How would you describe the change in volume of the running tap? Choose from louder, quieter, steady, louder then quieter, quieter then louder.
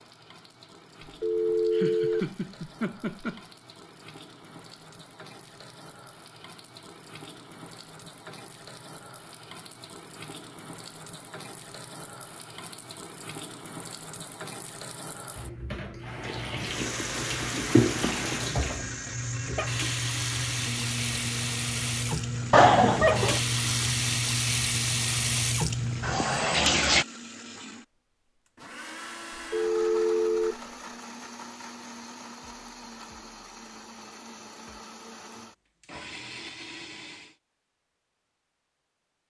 louder.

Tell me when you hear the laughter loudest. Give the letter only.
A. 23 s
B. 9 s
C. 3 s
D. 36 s
A.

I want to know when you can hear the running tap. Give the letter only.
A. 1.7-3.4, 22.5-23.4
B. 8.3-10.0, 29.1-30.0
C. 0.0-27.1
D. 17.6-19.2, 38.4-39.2
C.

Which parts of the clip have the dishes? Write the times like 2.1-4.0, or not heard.
not heard.